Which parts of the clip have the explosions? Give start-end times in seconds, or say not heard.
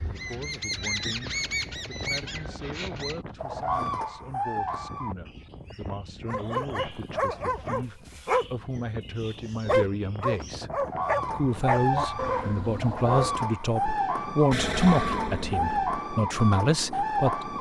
14.5-16.0.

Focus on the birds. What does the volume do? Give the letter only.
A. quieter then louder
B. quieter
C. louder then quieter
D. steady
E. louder
A.